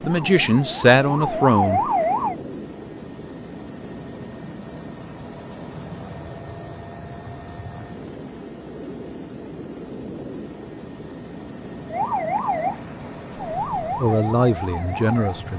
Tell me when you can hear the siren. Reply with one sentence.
You can hear the siren from 0.0 to 2.4 s and from 11.9 to 15.4 s.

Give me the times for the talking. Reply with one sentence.
The talking can be heard from 0.0 to 1.8 s and from 14.0 to 15.5 s.